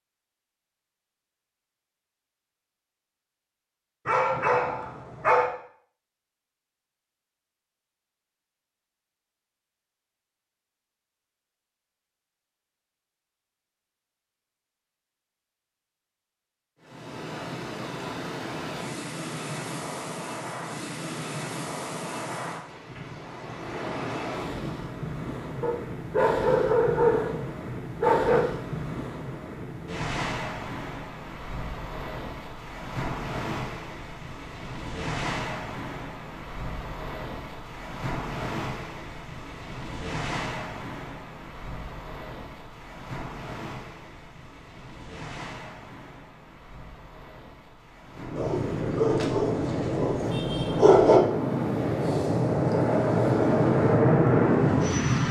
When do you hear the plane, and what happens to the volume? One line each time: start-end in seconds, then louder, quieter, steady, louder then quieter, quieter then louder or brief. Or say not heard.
48.1-55.2 louder.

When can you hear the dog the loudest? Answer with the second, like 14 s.
51 s.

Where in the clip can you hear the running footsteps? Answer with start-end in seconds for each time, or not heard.
not heard.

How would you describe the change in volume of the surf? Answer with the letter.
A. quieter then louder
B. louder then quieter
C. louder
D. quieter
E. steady
D.